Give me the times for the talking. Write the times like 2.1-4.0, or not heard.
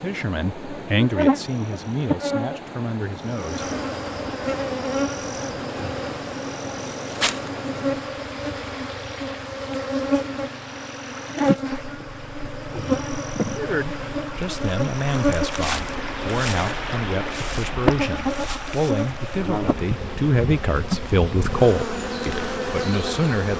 0.0-3.6, 13.5-23.5.